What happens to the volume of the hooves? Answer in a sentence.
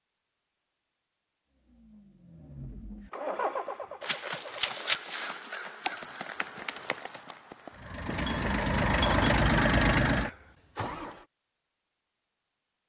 The volume of the hooves goes down, then up.